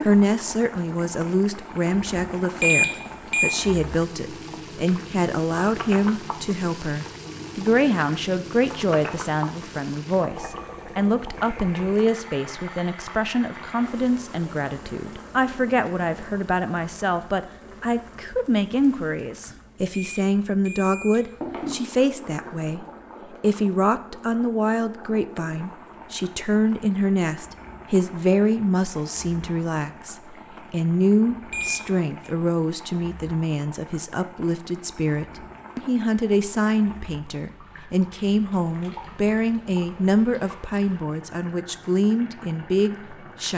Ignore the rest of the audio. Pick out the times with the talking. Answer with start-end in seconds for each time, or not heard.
0.0-43.5.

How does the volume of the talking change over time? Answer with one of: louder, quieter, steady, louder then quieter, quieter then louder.
steady.